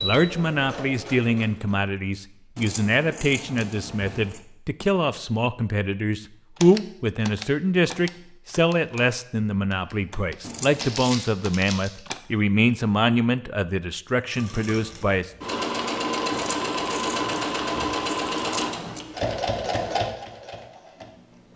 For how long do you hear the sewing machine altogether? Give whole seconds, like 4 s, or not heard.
9 s.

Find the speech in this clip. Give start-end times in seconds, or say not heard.
0.0-15.3.